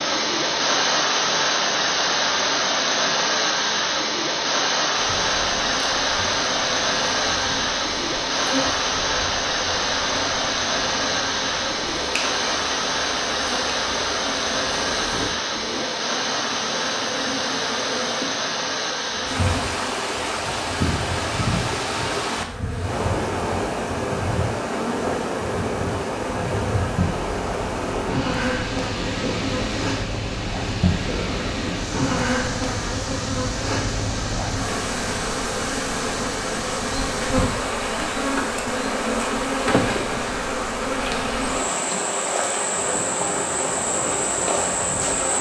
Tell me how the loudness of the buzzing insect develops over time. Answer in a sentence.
The volume of the buzzing insect goes up.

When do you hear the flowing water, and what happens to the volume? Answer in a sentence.
You can hear the flowing water from 0.0 to 45.3 s, getting quieter.